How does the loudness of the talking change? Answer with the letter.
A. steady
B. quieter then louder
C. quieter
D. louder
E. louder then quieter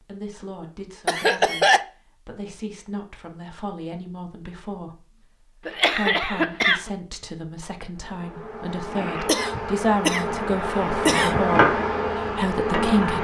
D.